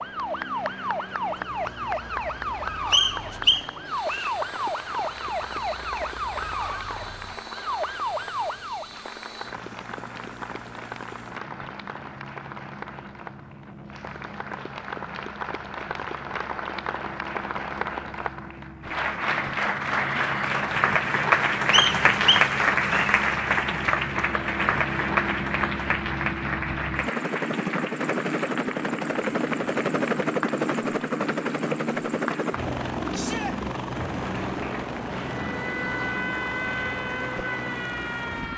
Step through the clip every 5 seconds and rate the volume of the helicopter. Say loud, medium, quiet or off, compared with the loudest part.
quiet, quiet, quiet, quiet, medium, loud, loud, medium.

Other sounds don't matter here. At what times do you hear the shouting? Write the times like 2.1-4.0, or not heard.
33.1-33.5.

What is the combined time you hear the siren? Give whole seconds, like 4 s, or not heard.
12 s.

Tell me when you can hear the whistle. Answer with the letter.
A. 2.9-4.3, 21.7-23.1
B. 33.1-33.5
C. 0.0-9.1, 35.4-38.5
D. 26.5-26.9
A.